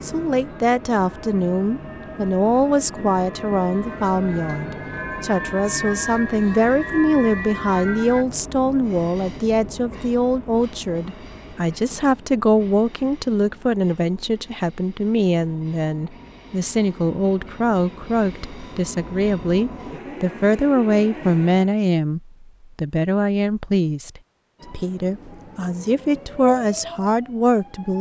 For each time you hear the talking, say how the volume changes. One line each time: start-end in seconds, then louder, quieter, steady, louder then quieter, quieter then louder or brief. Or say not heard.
0.0-27.9 steady.